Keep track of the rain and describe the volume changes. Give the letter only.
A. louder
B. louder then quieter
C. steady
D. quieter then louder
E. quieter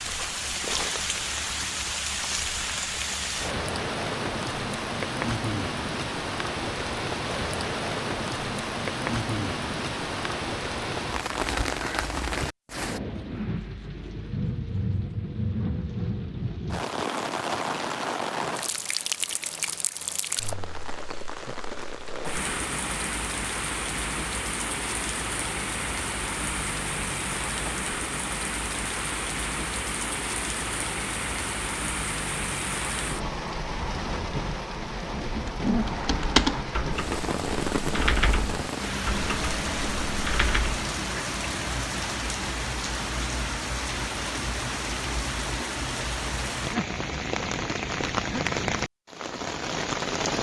C.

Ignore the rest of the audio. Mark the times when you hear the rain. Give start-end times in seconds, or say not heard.
0.0-50.3.